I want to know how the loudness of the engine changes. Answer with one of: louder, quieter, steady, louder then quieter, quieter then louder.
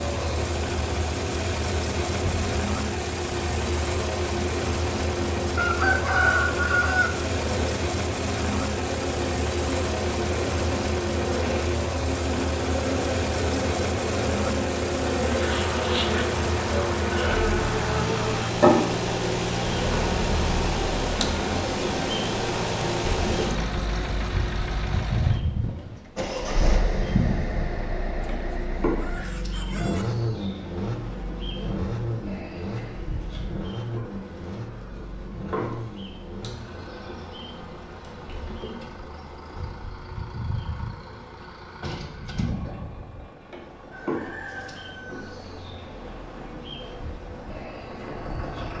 quieter.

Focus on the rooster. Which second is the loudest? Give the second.
6 s.